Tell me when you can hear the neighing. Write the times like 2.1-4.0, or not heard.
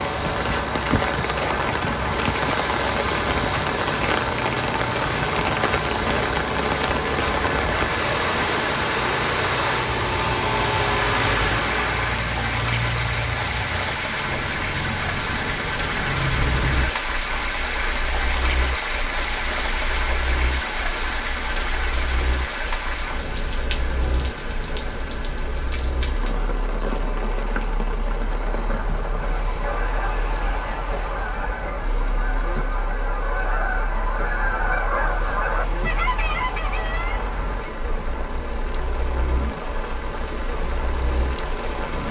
not heard.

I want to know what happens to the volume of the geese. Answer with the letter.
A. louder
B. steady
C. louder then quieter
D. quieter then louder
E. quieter
A.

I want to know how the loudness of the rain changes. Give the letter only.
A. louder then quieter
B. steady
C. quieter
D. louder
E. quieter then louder
C.